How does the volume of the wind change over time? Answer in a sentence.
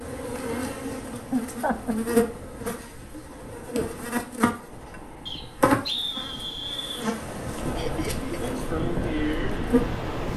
The loudness of the wind goes up.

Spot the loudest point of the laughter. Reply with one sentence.
The volume of the laughter peaks at 2 seconds.